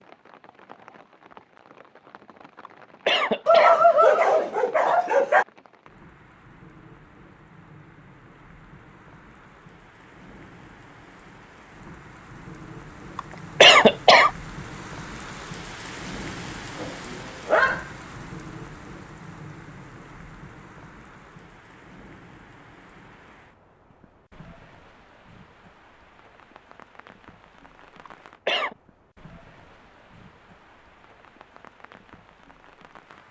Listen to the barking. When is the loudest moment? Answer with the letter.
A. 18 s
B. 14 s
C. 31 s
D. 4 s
D.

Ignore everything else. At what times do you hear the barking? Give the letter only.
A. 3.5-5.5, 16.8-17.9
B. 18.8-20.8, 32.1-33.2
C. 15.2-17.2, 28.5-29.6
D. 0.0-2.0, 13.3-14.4
A.